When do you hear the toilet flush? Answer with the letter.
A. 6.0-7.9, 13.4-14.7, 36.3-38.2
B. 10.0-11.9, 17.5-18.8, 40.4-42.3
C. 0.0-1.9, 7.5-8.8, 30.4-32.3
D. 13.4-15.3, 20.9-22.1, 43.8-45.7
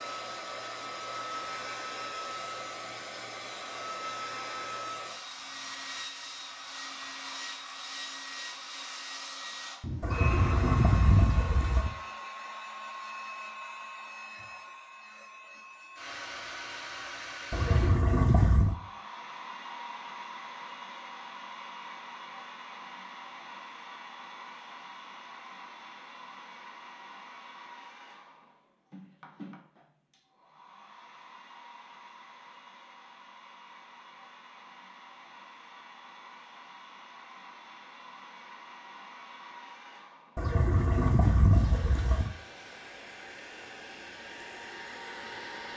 B.